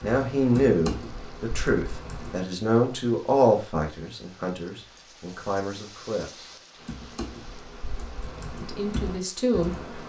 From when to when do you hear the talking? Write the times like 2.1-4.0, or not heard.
0.0-6.5, 8.6-9.8.